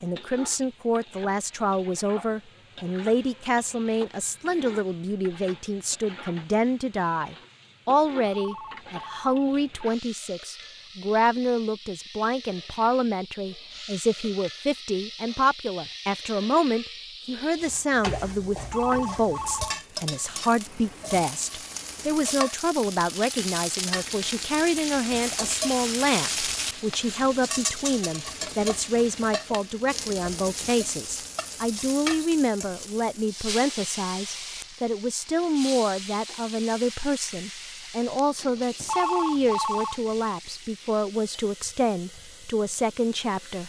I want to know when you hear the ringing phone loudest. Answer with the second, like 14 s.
39 s.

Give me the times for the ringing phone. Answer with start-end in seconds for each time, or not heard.
8.2-9.8, 18.6-19.8, 38.8-40.0.